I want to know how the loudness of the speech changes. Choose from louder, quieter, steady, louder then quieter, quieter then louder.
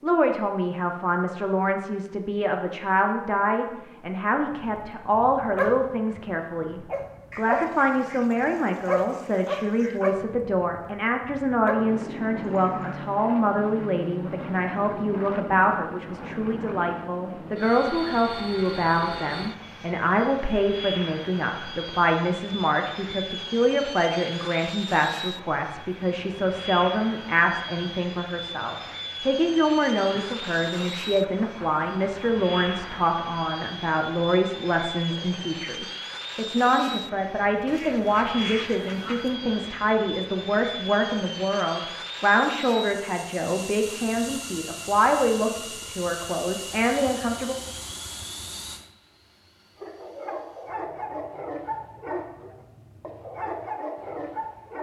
steady.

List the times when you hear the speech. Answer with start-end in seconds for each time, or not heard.
0.0-47.5.